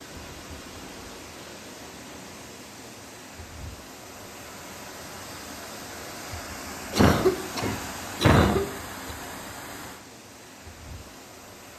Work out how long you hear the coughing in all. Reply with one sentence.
The coughing can be heard for 2 seconds in total.